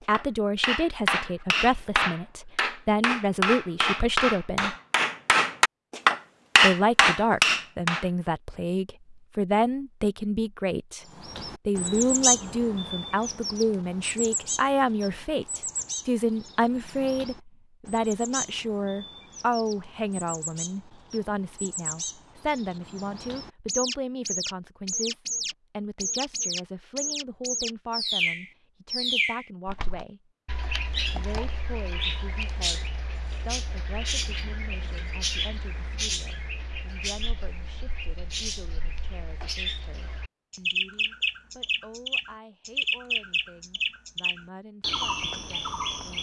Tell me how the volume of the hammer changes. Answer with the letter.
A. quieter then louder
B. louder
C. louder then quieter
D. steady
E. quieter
B.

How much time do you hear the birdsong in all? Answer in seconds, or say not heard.
35 s.